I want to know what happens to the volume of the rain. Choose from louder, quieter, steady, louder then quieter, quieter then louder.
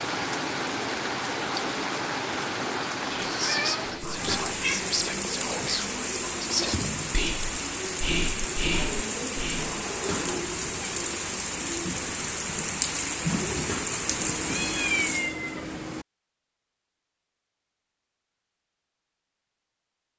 steady.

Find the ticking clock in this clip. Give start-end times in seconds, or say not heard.
not heard.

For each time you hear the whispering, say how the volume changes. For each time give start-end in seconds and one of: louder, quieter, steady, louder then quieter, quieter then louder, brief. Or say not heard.
3.0-9.7 steady.